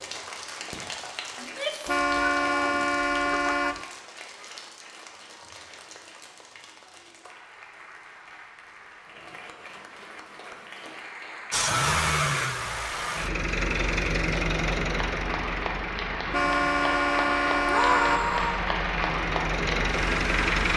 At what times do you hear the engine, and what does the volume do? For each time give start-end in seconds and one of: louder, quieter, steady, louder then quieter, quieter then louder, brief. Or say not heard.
11.5-20.7 quieter then louder.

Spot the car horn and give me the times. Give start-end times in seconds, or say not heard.
1.9-3.9, 16.3-18.3.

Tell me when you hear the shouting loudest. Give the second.
18 s.